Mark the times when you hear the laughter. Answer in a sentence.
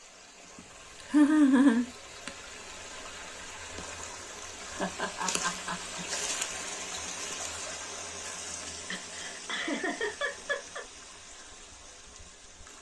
You can hear the laughter from 1.1 to 2.3 s, from 4.7 to 6.0 s and from 8.9 to 10.8 s.